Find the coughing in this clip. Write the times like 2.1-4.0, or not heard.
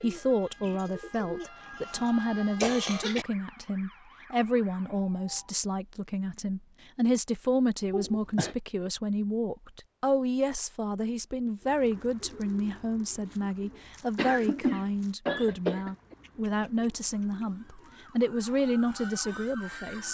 2.6-3.2, 7.9-8.6, 14.2-16.1.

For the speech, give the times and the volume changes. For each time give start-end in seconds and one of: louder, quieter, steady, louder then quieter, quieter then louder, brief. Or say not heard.
0.0-20.0 steady.